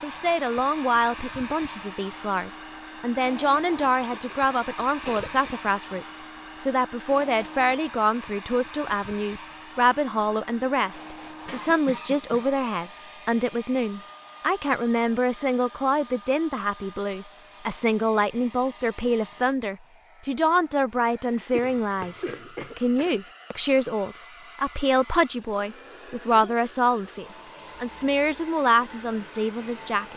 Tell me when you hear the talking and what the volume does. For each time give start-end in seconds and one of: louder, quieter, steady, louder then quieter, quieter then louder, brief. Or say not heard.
0.0-30.1 steady.